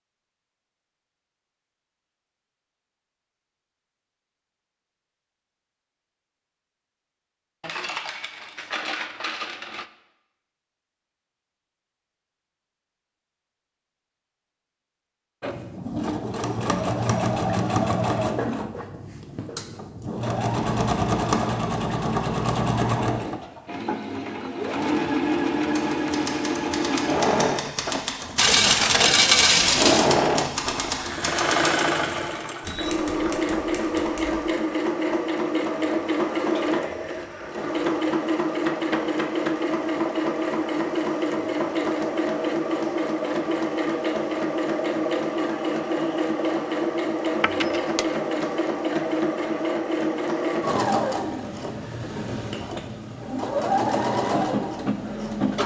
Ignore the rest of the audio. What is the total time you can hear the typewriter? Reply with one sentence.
The typewriter can be heard for 9 seconds in total.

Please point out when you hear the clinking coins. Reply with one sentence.
The clinking coins can be heard from 7.6 to 9.9 s, from 28.4 to 30.1 s and from 47.4 to 48.0 s.